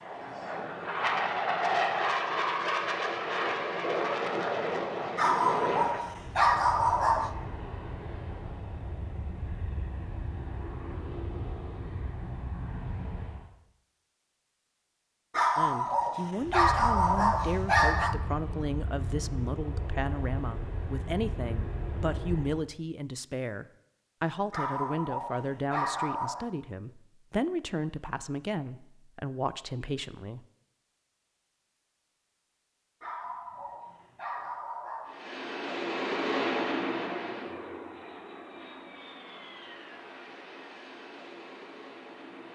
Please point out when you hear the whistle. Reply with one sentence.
You can't hear the whistle here.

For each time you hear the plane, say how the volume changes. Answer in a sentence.
You can hear the plane from 0.0 to 13.5 s, getting quieter; from 16.4 to 22.6 s, at a steady volume; and from 35.0 to 42.5 s, getting quieter.